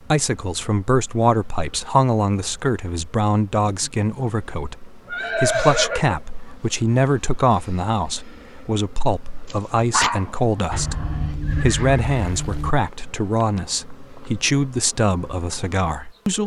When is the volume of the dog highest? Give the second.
10 s.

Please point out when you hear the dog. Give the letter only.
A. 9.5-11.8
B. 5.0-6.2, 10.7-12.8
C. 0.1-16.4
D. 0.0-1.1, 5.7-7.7
A.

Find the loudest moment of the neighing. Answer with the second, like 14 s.
6 s.